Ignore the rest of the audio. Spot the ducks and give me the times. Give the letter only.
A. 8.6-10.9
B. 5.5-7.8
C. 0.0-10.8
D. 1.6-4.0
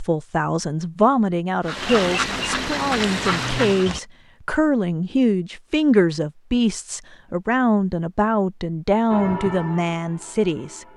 D.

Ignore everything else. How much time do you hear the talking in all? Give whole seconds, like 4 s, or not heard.
11 s.